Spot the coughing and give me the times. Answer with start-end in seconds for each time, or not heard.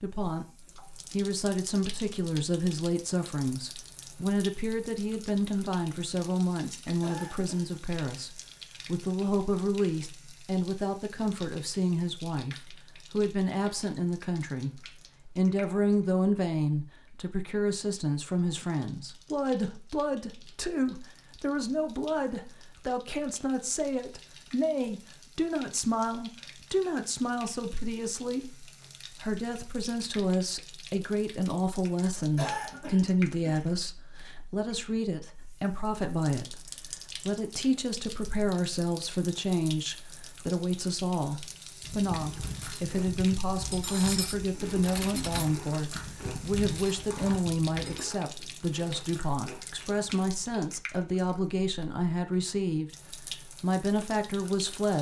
7.0-8.3, 32.4-33.6.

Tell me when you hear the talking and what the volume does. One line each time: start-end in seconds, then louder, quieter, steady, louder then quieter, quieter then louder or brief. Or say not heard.
0.0-0.5 brief
1.1-54.9 steady.